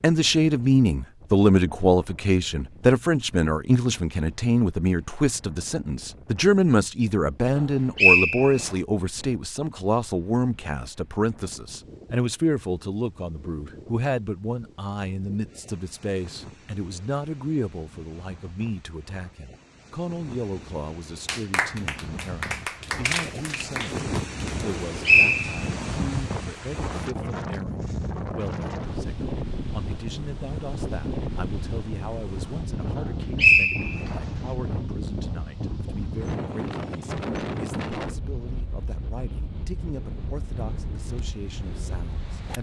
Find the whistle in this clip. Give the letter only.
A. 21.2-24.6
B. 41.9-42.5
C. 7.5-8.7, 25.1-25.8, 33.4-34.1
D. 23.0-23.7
C.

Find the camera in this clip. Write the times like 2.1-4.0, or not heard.
23.0-23.7.